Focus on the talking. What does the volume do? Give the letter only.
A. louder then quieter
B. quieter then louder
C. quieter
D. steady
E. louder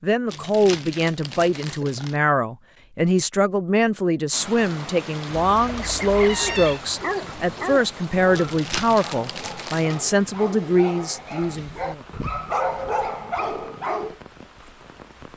D.